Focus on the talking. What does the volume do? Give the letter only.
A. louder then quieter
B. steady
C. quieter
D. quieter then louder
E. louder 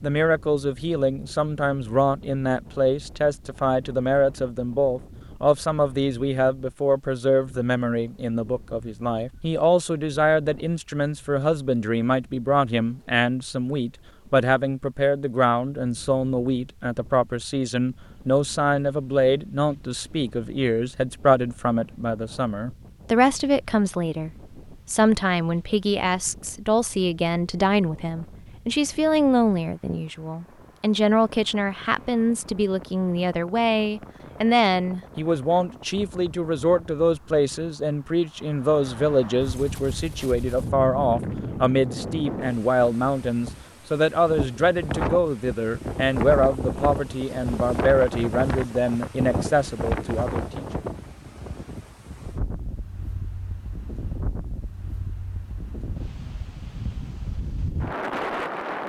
B.